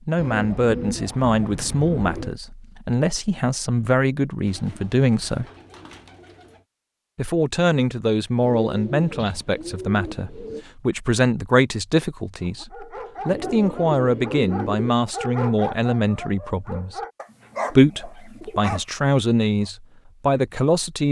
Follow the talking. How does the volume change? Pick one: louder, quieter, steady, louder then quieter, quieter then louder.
steady.